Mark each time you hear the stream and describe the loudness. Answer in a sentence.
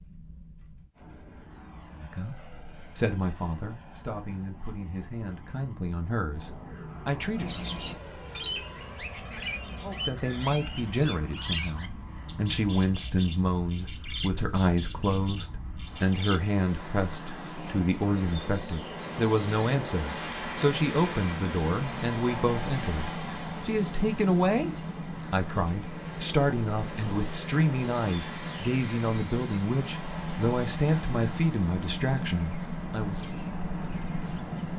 You can't hear the stream here.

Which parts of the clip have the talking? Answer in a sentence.
You can hear the talking from 1.9 to 7.6 s and from 9.8 to 33.2 s.